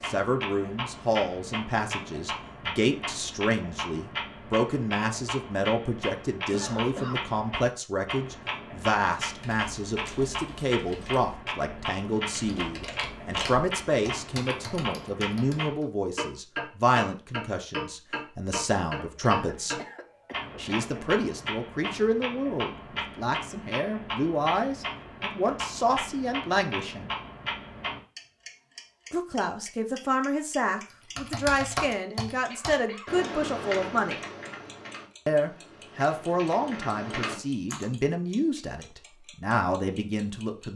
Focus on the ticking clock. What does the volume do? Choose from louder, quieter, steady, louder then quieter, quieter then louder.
quieter.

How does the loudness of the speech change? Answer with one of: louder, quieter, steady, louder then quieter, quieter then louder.
steady.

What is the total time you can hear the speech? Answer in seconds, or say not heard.
37 s.